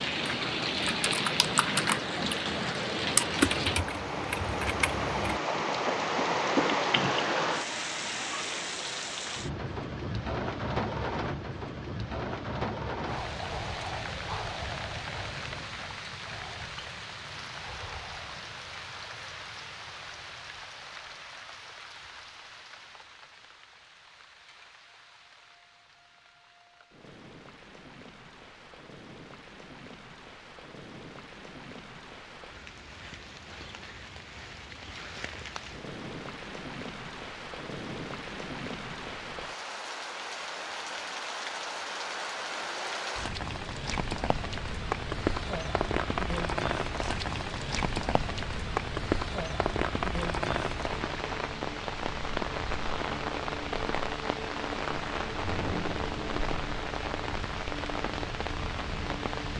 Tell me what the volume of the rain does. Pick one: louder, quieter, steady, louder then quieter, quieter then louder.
quieter then louder.